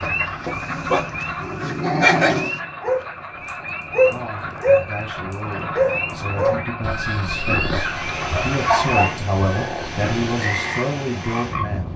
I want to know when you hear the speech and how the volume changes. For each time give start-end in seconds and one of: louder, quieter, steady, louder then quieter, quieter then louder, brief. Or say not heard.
4.0-11.9 louder.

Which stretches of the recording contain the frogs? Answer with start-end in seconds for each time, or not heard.
0.0-11.9.